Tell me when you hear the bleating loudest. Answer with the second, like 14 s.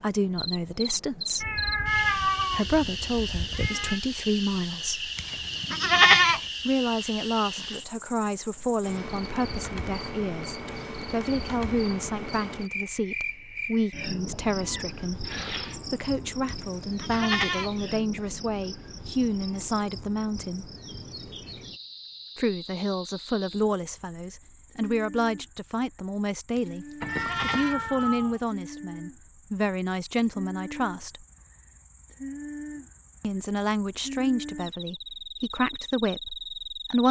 6 s.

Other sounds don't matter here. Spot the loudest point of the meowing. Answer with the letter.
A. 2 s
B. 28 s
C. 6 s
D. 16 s
A.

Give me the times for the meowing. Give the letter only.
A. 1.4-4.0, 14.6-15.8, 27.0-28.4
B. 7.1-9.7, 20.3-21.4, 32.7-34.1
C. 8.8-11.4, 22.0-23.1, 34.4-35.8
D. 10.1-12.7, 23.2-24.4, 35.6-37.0
A.